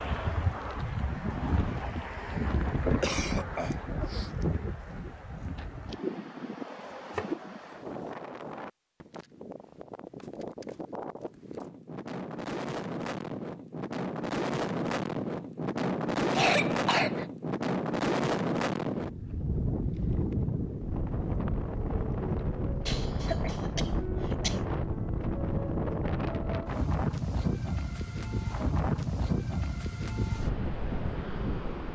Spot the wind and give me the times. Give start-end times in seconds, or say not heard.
0.0-31.8.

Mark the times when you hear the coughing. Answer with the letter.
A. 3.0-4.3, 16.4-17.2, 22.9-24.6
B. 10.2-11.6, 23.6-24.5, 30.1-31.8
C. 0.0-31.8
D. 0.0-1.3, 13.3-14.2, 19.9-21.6
A.